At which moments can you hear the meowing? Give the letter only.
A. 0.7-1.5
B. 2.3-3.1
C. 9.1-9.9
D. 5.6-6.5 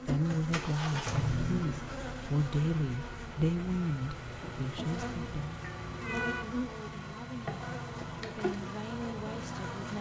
D.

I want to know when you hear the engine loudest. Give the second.
1 s.